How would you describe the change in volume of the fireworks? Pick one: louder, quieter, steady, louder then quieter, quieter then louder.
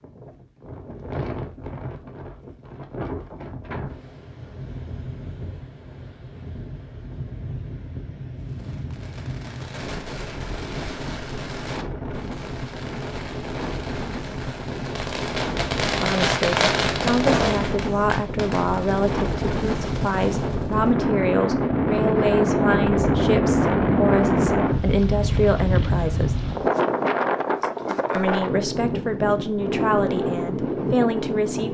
louder then quieter.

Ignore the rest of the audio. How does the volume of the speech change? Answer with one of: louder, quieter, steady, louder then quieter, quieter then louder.
steady.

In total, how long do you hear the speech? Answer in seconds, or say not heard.
14 s.